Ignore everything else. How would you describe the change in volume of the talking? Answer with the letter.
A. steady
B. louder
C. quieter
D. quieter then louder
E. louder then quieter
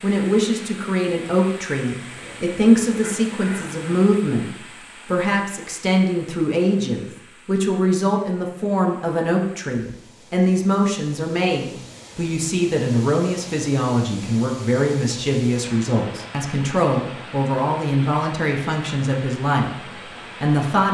A.